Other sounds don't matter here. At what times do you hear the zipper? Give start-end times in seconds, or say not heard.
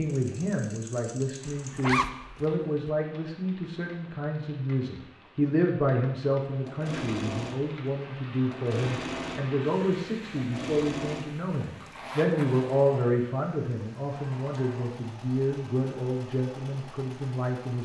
1.7-2.9, 11.8-12.7.